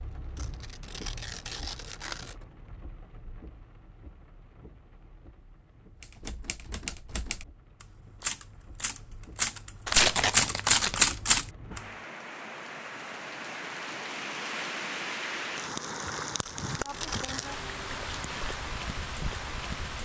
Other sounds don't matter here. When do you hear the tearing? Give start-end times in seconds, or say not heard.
0.3-2.4, 9.8-11.2, 16.4-17.6.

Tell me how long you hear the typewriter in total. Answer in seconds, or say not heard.
6 s.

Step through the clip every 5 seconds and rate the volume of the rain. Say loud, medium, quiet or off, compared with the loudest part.
quiet, quiet, loud, loud.